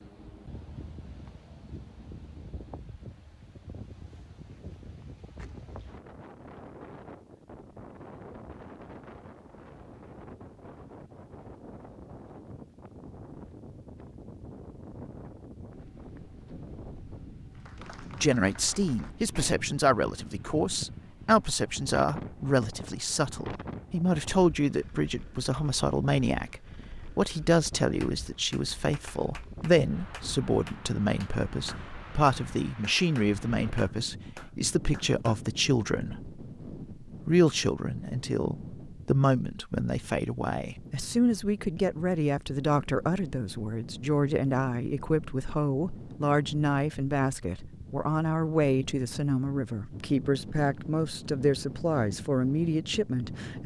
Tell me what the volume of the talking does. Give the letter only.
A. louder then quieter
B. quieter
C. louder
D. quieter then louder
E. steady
E.